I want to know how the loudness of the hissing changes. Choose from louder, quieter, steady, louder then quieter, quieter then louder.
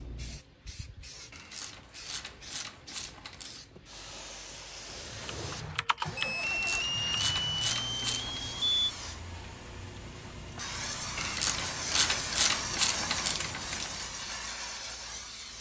louder.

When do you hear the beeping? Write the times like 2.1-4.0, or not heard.
6.2-8.9.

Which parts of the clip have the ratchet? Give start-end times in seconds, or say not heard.
1.3-3.6, 6.4-8.4, 11.2-14.1.